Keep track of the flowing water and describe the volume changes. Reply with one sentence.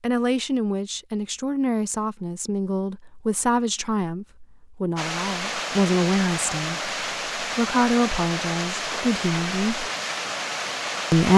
The loudness of the flowing water stays about the same.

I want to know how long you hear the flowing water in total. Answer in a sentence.
The flowing water can be heard for 6 seconds in total.